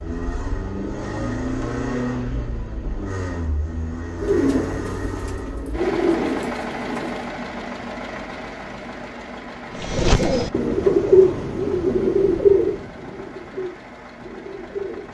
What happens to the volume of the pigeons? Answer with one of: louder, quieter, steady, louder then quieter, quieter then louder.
louder then quieter.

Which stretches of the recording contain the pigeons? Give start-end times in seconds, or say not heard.
4.2-7.3, 9.8-15.1.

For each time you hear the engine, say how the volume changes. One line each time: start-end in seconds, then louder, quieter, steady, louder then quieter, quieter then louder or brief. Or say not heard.
0.0-15.1 quieter.